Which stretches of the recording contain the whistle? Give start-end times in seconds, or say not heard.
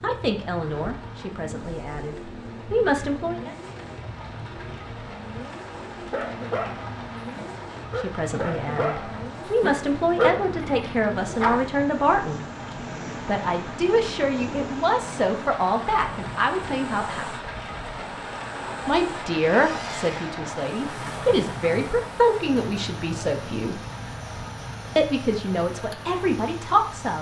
not heard.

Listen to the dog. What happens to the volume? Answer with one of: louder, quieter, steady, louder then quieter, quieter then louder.
louder then quieter.